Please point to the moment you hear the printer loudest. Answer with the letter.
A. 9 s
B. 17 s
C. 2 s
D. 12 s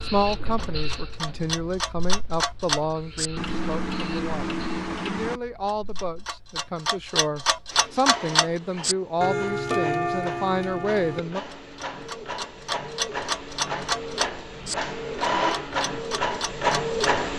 B.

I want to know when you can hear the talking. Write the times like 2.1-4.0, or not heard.
0.0-11.4.